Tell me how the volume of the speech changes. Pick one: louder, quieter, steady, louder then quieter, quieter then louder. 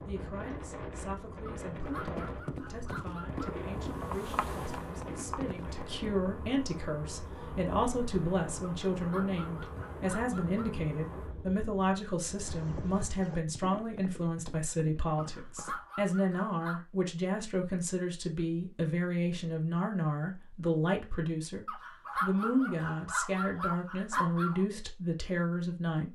louder.